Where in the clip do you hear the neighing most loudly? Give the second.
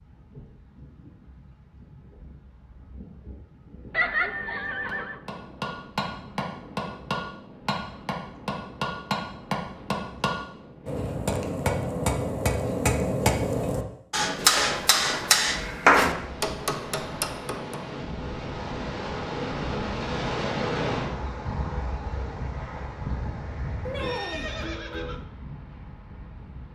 4 s.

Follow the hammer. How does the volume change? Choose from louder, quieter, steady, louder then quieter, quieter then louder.
louder.